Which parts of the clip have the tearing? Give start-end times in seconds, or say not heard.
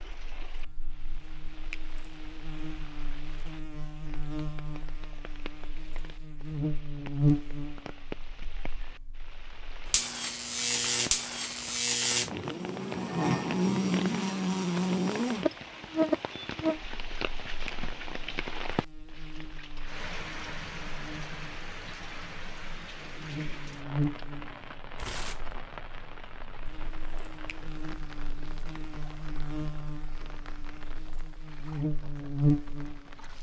24.9-25.6.